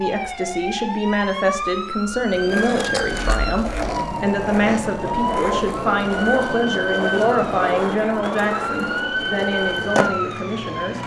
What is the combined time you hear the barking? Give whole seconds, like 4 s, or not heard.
not heard.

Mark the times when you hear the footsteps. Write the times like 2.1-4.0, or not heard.
not heard.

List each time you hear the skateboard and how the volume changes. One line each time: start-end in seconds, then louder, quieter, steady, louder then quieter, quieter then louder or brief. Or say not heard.
2.2-11.0 steady.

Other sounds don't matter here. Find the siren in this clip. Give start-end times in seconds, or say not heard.
0.0-11.0.